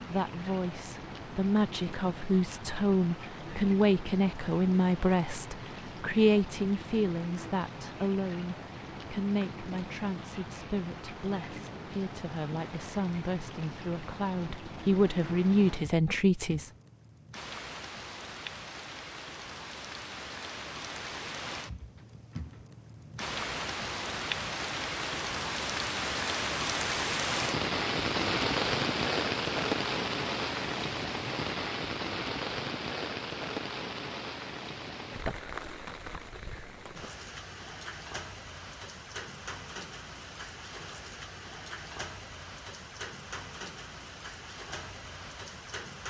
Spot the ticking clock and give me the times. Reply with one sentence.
You can't hear the ticking clock here.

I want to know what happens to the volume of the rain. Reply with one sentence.
The volume of the rain goes up, then down.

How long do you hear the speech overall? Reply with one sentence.
You can hear the speech for 17 seconds altogether.